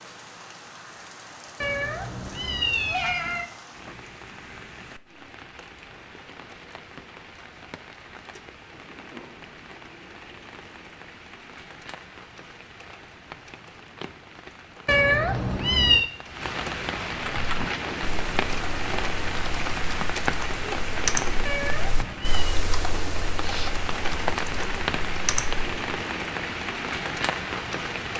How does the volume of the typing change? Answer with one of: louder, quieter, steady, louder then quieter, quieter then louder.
louder then quieter.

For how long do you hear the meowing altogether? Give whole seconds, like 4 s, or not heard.
4 s.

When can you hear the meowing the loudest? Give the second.
16 s.